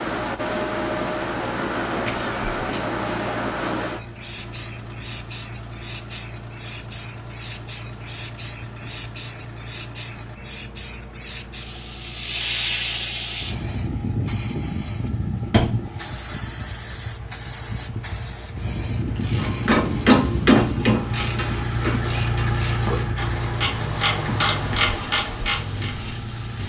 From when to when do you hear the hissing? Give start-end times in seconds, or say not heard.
0.0-26.6.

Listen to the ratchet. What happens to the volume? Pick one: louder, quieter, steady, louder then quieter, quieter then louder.
quieter then louder.